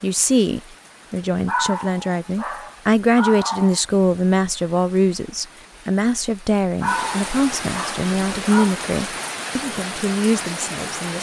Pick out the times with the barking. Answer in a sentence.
The barking can be heard from 1.4 to 3.9 s and from 6.8 to 8.8 s.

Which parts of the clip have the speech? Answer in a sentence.
You can hear the speech from 0.0 to 11.1 s.